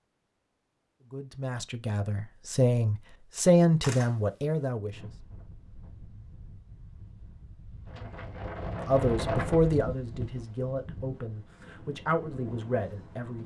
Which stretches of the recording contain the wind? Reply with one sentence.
You can hear the wind from 4.9 to 13.4 s.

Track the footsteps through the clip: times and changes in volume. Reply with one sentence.
You can't hear the footsteps here.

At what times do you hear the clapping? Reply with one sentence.
You can't hear the clapping here.